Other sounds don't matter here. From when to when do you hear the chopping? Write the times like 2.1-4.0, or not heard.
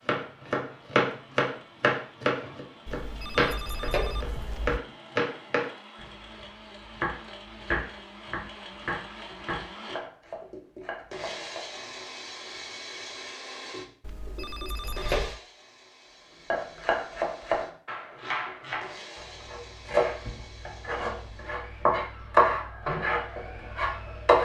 0.1-11.9, 16.5-24.4.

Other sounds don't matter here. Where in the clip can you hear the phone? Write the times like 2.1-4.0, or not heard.
2.9-4.8, 14.0-15.4.